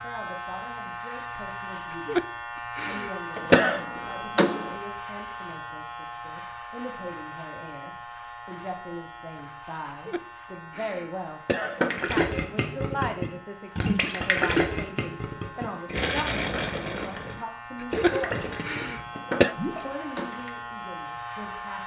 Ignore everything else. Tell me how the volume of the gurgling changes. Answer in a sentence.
The loudness of the gurgling goes down.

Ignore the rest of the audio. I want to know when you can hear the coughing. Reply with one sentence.
The coughing can be heard from 2.0 to 3.9 s, from 10.1 to 11.8 s and from 17.8 to 19.6 s.